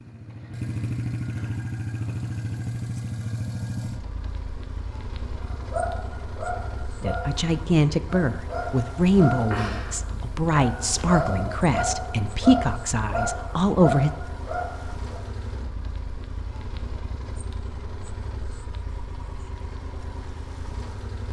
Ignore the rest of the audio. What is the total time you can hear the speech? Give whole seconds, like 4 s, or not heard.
7 s.